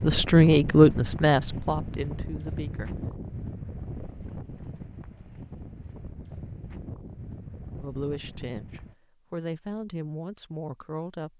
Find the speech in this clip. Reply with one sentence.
You can hear the speech from 0.0 to 3.0 s and from 7.8 to 11.3 s.